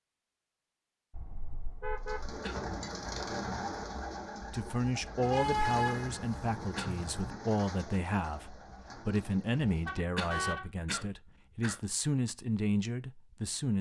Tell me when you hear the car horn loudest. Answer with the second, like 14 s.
6 s.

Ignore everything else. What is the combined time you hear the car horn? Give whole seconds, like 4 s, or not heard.
4 s.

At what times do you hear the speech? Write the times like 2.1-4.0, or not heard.
4.5-13.7.